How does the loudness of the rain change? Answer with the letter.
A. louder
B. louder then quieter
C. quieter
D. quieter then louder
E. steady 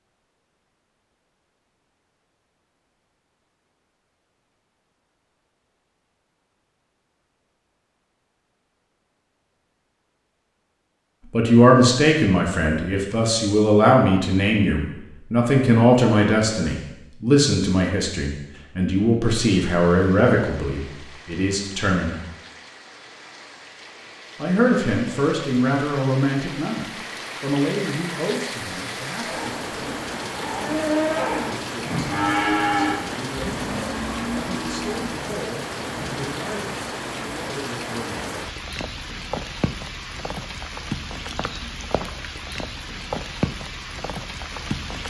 A.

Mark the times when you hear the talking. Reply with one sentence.
You can hear the talking from 11.3 to 22.1 s, from 24.4 to 30.1 s and from 31.4 to 38.2 s.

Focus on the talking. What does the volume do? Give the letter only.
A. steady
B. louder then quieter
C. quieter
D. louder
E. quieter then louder
C.